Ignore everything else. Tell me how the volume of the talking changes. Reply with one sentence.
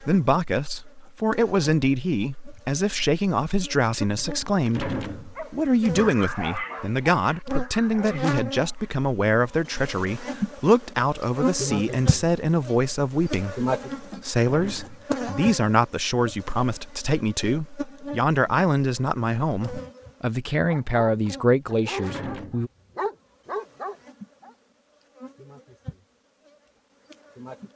The loudness of the talking stays about the same.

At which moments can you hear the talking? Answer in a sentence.
The talking can be heard from 0.0 to 22.7 s.